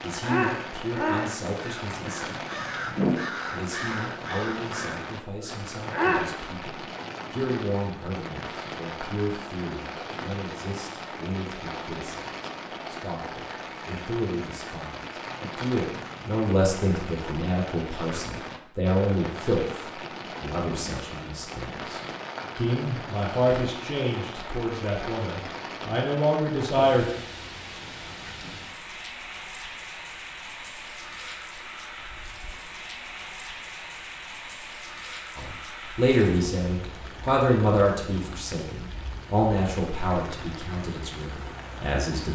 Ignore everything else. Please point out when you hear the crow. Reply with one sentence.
You can hear the crow from 0.1 to 6.3 s.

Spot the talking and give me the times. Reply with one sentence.
You can hear the talking from 0.0 to 2.5 s, from 3.5 to 19.8 s, from 20.4 to 27.1 s and from 35.4 to 42.3 s.